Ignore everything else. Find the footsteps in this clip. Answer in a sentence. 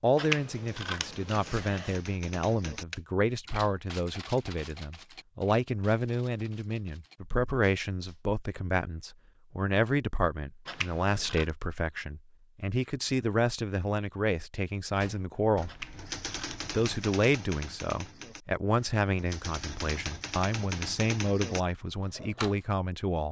You can't hear the footsteps here.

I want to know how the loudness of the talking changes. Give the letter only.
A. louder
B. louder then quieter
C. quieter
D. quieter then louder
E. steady
E.